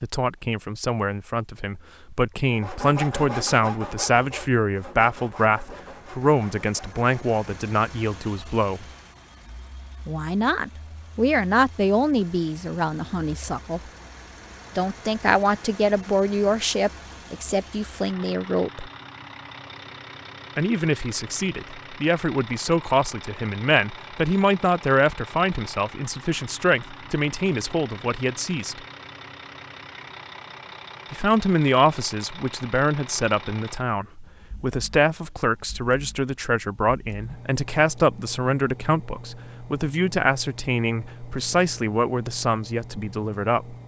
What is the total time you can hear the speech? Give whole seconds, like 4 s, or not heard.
38 s.